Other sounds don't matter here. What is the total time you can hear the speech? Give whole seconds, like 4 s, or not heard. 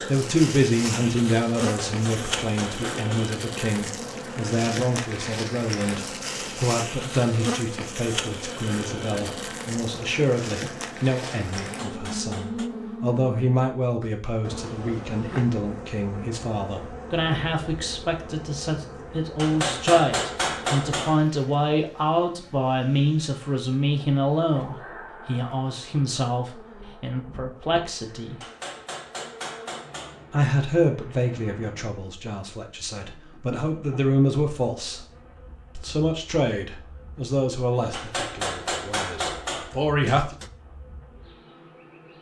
38 s.